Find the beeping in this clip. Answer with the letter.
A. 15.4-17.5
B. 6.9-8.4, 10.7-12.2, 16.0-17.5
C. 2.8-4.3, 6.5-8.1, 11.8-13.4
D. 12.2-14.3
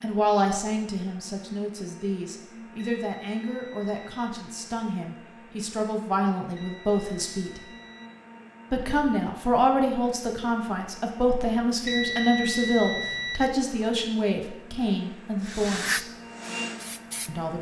C.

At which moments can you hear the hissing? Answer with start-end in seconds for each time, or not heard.
15.4-17.5.